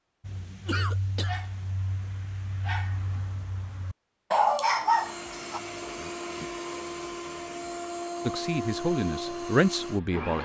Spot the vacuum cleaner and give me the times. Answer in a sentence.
The vacuum cleaner can be heard from 4.8 to 10.4 s.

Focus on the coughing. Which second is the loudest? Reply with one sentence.
The loudest moment of the coughing is at 1 second.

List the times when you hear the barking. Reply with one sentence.
The barking can be heard from 0.2 to 5.6 s.